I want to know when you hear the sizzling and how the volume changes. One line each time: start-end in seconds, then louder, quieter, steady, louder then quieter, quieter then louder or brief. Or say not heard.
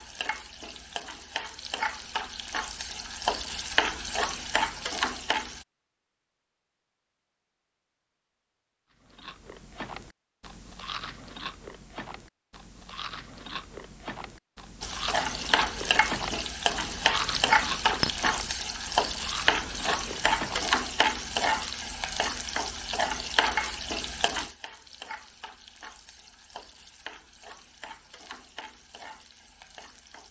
0.0-5.7 louder
14.8-30.2 quieter.